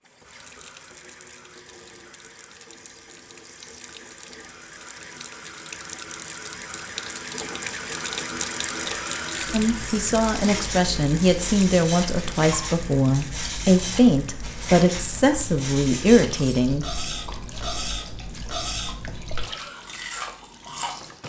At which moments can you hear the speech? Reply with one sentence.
You can hear the speech from 9.5 to 16.9 s.